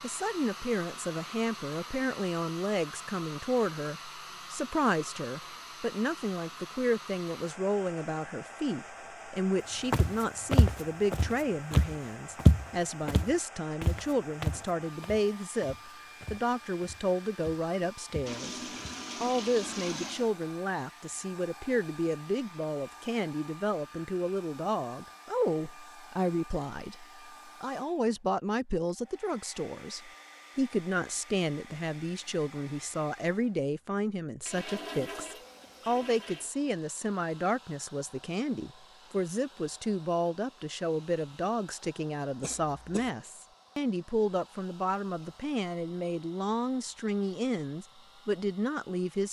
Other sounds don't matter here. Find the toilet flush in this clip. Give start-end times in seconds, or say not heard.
18.2-20.3, 34.5-36.5.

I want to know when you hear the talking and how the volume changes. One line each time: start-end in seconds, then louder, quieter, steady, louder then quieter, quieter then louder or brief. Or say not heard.
0.0-18.6 steady
19.2-49.2 steady.